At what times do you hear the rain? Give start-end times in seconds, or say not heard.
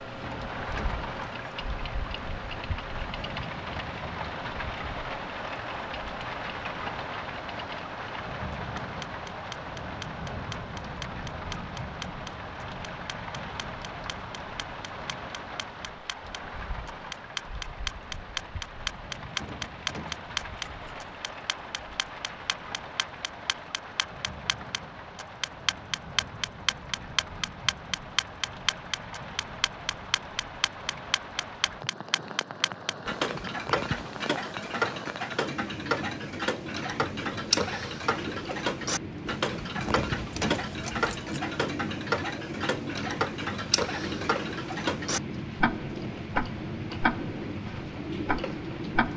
0.0-49.1.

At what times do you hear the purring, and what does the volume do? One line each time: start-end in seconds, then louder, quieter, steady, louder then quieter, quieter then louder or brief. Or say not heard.
not heard.